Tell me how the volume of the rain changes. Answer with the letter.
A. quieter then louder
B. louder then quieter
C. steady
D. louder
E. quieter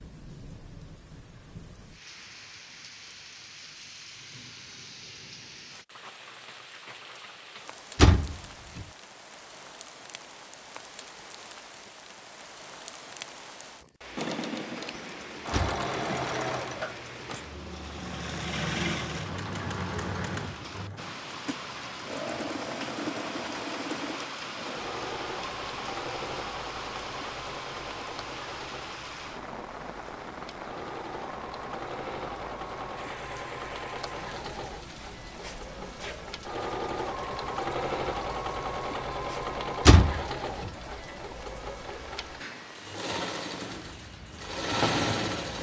B.